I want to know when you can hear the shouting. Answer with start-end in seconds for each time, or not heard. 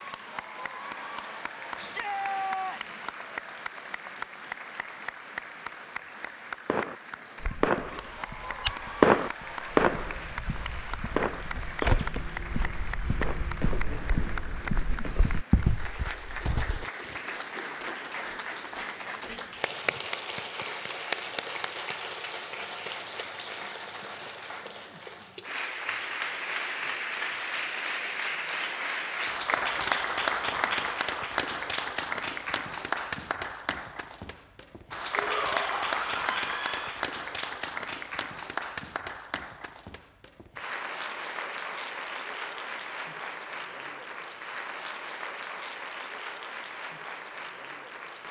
1.8-3.0, 35.1-37.0.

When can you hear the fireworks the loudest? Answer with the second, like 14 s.
9 s.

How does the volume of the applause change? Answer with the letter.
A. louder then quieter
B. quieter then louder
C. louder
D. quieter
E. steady
A.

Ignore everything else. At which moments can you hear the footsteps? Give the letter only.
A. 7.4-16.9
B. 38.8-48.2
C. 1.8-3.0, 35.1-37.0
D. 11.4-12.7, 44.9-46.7
A.